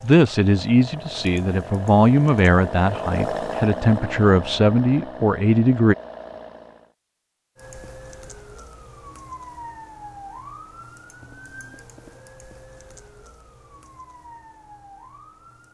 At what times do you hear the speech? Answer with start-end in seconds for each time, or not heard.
0.0-6.0.